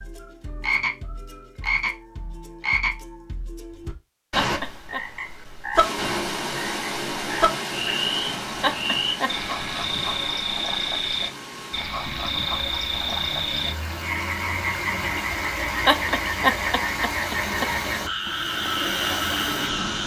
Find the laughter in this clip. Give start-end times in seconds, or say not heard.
4.3-5.0, 8.6-9.3, 15.8-17.7.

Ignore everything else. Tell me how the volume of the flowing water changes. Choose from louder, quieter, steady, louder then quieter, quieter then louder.
quieter then louder.